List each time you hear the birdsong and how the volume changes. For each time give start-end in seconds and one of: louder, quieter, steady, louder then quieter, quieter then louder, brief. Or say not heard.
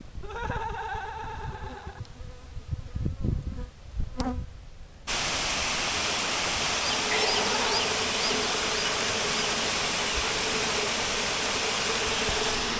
not heard.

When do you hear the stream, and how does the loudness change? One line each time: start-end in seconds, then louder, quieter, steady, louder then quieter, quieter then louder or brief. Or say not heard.
5.0-12.7 steady.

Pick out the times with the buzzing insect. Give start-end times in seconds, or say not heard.
0.0-12.7.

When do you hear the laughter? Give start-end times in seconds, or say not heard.
0.2-2.0, 7.3-7.7.